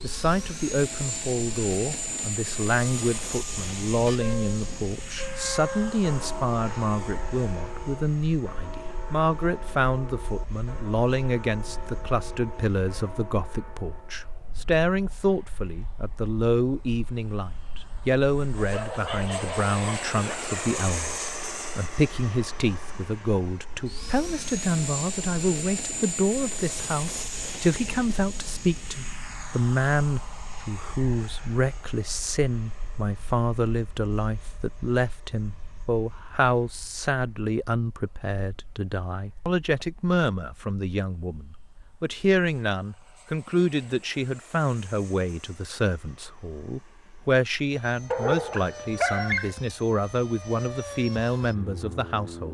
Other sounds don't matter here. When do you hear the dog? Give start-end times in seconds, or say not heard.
18.6-20.4, 48.1-49.5.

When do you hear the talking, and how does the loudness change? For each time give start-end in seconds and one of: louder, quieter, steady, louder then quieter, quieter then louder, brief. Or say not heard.
0.0-52.5 steady.